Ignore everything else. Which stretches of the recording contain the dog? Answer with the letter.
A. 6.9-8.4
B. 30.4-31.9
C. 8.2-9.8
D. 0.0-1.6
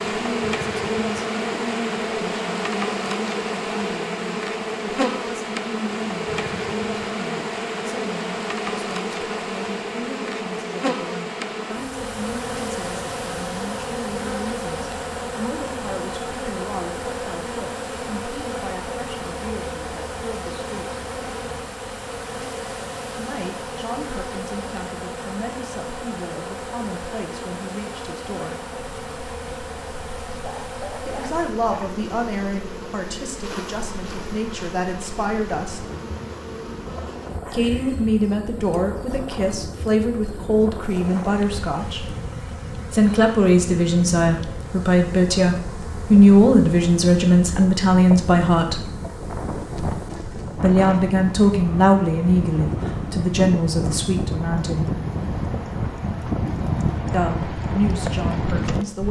B.